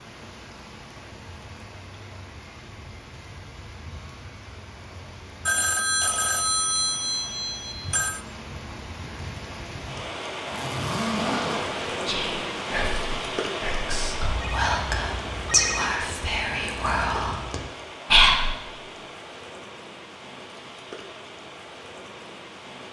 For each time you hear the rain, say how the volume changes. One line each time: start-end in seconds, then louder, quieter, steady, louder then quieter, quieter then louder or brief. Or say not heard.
0.0-22.8 louder then quieter.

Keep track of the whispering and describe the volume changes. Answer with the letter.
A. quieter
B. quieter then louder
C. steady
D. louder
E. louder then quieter
D.